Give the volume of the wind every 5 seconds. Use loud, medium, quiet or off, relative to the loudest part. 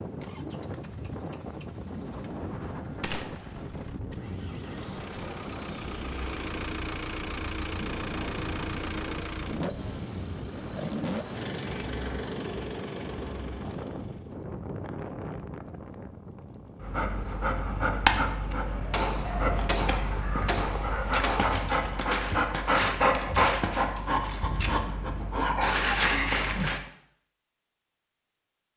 loud, loud, loud, loud, off, off.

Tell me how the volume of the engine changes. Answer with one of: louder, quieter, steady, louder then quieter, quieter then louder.
louder.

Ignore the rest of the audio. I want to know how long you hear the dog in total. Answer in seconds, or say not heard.
10 s.